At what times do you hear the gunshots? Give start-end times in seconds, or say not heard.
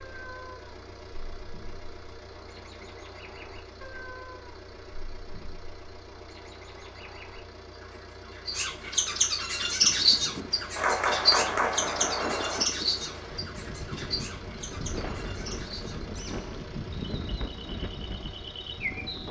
10.8-12.7.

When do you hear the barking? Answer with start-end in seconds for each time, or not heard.
not heard.